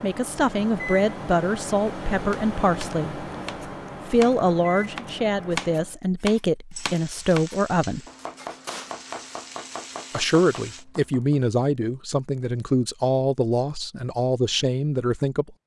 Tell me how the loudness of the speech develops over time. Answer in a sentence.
The volume of the speech stays about the same.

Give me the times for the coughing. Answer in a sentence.
The coughing can't be heard in this clip.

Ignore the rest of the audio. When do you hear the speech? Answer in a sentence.
The speech can be heard from 0.0 to 3.2 s, from 4.0 to 8.1 s and from 10.1 to 15.6 s.